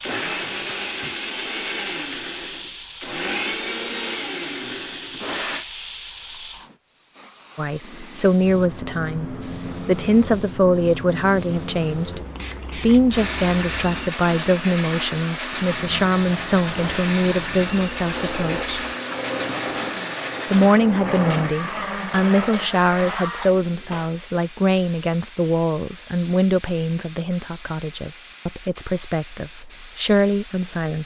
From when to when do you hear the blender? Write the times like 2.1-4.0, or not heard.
0.0-5.7, 13.1-23.6.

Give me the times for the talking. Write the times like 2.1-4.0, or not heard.
7.5-18.8, 20.5-31.0.